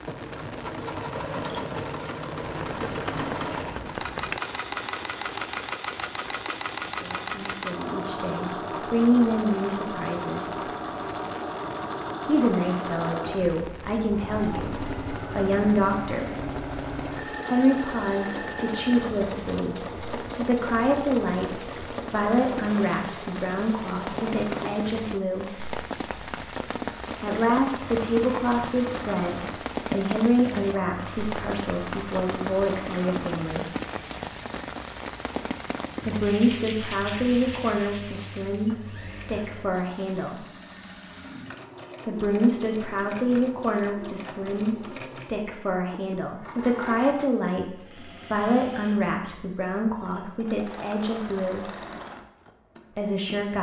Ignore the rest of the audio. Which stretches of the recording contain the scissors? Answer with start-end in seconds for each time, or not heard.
2.4-4.4.